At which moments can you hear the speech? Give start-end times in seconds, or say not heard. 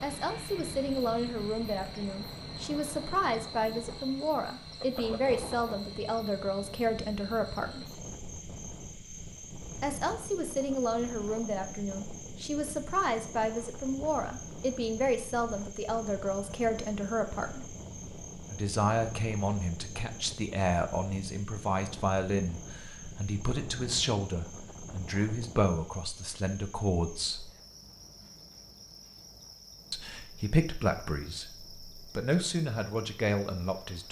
0.0-7.8, 9.8-17.6, 18.5-27.6, 29.9-34.0.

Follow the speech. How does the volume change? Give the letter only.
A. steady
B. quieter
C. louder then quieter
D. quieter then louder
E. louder
A.